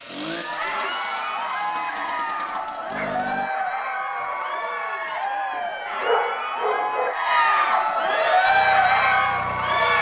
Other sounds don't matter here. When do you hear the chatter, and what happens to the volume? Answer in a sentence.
You can hear the chatter from 0.1 to 9.9 s, getting louder.